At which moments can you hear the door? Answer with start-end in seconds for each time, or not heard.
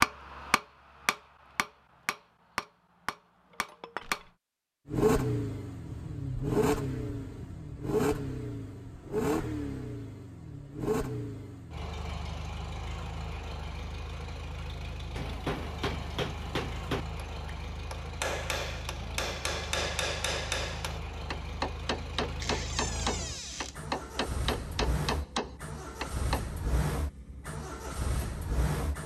22.4-23.8.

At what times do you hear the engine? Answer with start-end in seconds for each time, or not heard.
4.8-29.0.